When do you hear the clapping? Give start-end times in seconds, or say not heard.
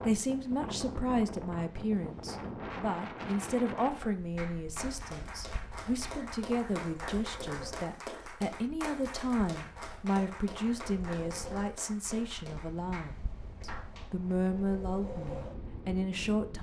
3.8-14.2.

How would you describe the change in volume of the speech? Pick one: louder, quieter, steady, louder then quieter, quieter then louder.
steady.